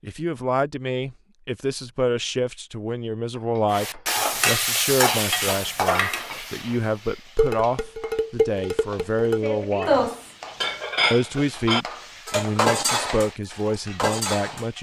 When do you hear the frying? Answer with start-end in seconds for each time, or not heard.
3.7-14.7.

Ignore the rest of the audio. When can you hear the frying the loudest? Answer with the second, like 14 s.
5 s.